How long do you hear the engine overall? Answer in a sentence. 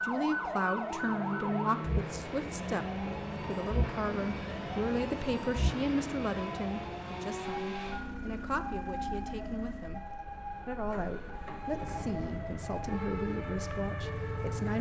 The engine can be heard for 15 seconds in total.